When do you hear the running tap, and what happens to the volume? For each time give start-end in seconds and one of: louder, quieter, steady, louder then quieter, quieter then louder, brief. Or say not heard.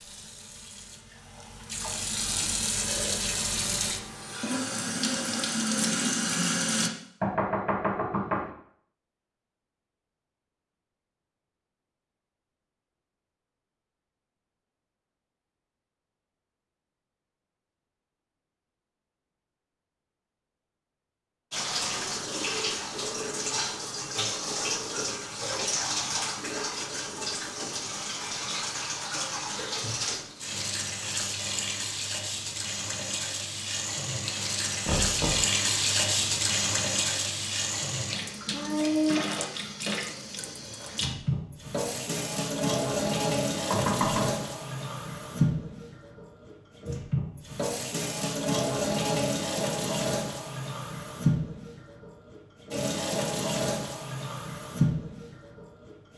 0.0-6.9 louder
21.5-56.1 steady.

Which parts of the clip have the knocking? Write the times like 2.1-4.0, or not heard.
7.2-8.5, 34.9-35.5, 43.7-44.3.